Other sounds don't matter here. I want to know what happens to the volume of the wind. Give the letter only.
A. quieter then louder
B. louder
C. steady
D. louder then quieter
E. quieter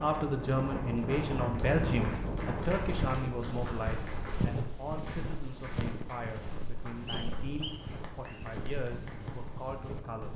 E.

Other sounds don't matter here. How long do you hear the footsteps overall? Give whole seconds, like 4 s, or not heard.
8 s.